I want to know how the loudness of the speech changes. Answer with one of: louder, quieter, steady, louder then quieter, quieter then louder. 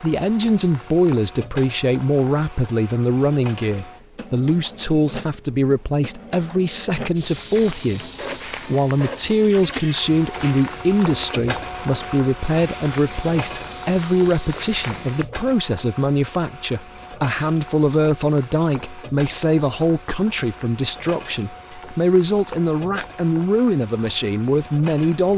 steady.